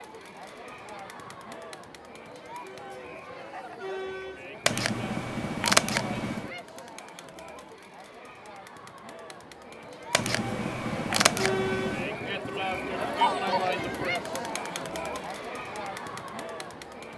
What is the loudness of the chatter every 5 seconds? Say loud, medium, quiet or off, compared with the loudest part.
medium, quiet, loud, medium.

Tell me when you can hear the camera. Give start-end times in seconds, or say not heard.
4.7-6.5, 10.1-12.2.